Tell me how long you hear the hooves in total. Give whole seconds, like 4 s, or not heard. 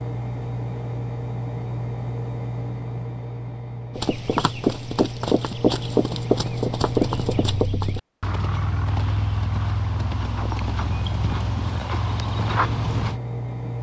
9 s.